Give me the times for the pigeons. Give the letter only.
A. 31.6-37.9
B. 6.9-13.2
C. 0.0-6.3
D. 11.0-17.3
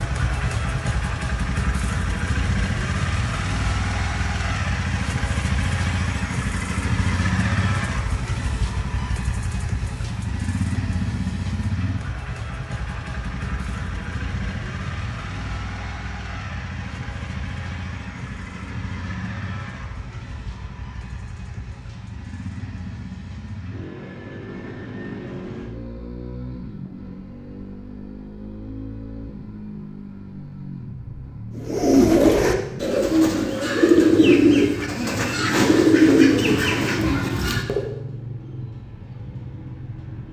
A.